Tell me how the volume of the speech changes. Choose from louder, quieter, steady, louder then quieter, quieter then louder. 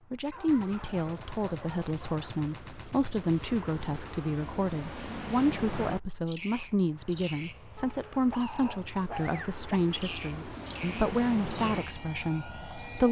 steady.